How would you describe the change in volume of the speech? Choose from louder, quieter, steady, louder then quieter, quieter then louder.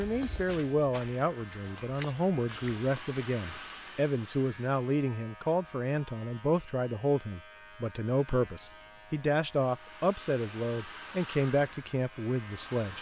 steady.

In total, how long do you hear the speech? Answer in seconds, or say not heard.
13 s.